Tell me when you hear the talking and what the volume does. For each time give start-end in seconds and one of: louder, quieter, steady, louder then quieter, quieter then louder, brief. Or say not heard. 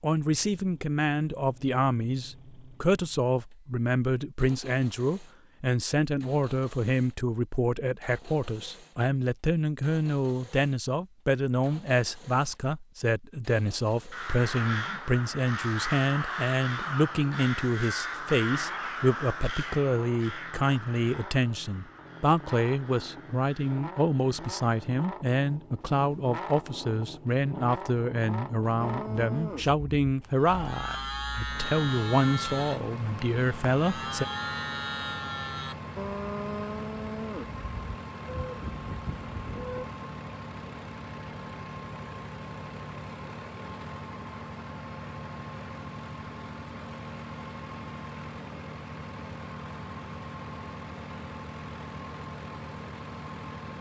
0.0-34.2 steady.